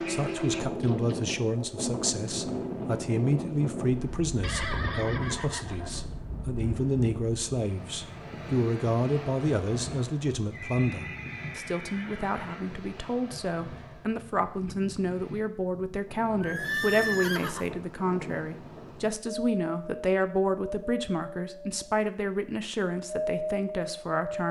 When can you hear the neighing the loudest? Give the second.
17 s.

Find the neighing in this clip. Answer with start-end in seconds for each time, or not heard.
4.4-6.0, 10.5-12.8, 16.4-17.8.